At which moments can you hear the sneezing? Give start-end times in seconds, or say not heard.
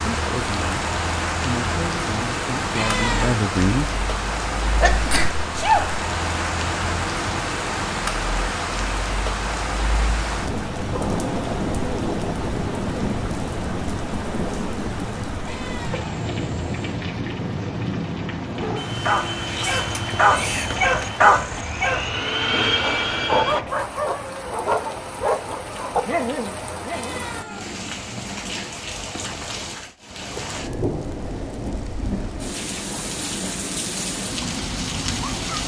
4.8-6.0, 19.5-20.8.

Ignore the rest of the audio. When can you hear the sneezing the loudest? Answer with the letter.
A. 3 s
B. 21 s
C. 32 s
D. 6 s
D.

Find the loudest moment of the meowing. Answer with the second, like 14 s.
3 s.